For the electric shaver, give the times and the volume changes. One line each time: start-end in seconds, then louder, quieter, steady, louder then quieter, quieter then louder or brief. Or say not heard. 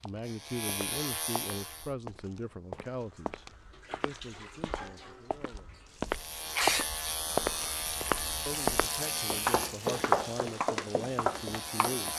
0.1-1.9 brief
6.0-12.1 quieter.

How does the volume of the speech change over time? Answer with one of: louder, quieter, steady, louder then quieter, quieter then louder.
quieter then louder.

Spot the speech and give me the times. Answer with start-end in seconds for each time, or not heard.
0.0-5.8, 8.4-12.1.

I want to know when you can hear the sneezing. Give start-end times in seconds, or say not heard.
6.3-7.8.